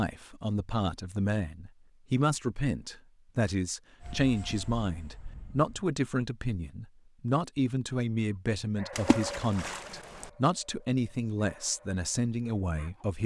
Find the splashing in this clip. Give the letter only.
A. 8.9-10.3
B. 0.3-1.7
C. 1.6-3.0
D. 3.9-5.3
A.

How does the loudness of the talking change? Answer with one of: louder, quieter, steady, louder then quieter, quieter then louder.
steady.